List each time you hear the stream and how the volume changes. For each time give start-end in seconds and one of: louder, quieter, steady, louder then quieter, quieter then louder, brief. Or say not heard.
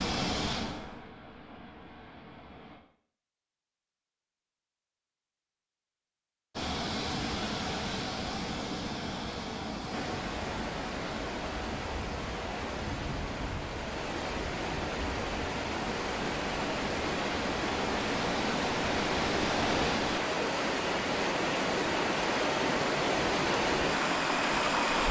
9.9-25.0 louder.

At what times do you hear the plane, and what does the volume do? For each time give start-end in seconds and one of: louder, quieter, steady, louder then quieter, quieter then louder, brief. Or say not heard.
0.0-2.8 brief
6.5-20.2 quieter then louder.